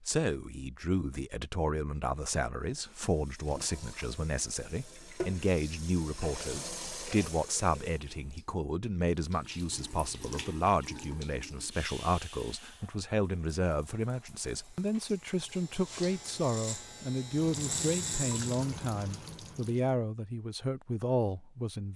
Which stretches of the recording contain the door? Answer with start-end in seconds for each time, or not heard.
not heard.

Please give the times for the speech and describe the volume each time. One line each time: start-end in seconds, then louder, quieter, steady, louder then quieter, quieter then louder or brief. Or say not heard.
0.0-21.9 steady.